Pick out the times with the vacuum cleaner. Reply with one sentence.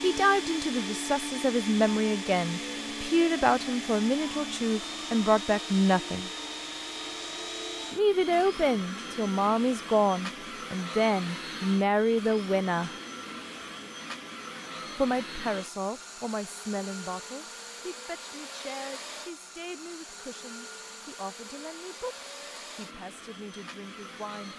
You can hear the vacuum cleaner from 0.0 to 24.5 s.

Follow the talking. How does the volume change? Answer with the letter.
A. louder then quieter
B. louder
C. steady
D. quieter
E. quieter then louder
D.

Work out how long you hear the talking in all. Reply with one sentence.
You can hear the talking for 21 seconds altogether.